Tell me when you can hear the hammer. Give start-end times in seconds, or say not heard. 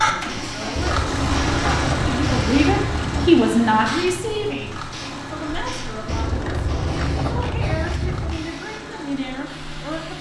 not heard.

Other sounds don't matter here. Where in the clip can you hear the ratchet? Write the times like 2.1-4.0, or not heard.
0.8-3.4, 6.0-8.5.